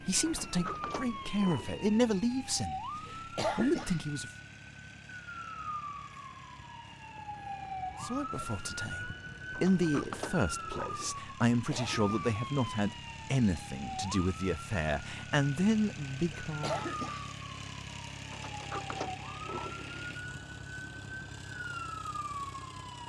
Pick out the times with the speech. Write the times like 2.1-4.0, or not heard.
0.0-4.3, 8.0-16.9.